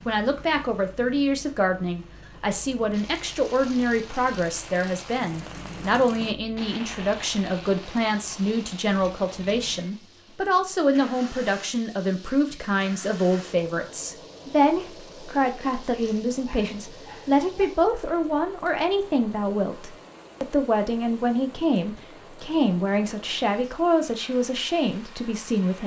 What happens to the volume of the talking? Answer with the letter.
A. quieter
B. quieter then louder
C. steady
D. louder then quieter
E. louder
C.